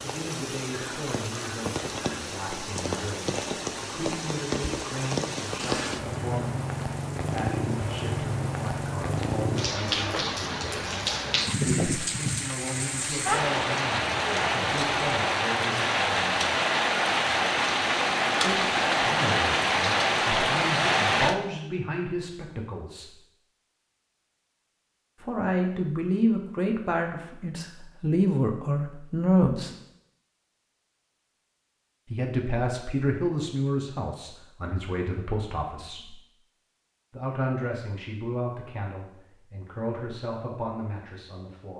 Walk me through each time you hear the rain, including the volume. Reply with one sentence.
You can hear the rain from 0.0 to 21.4 s, getting louder.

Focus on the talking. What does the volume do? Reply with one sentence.
The loudness of the talking goes up, then down.